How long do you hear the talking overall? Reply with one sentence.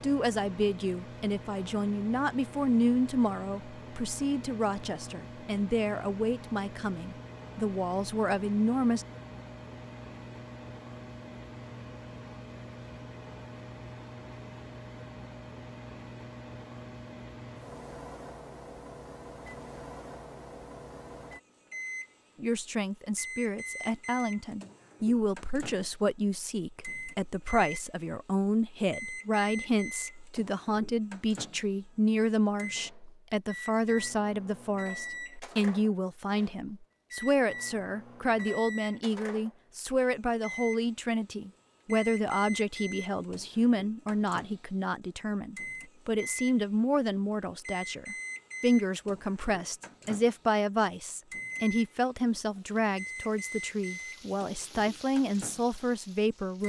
The talking can be heard for 43 seconds in total.